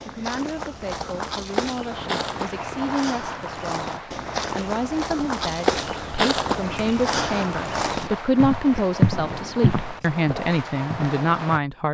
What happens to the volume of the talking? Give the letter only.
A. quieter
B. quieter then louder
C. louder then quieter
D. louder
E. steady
D.